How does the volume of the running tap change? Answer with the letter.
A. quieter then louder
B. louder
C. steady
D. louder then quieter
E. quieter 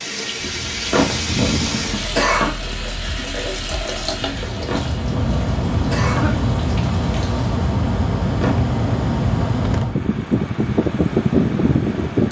E.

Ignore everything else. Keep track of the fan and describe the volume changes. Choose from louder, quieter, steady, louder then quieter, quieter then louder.
louder.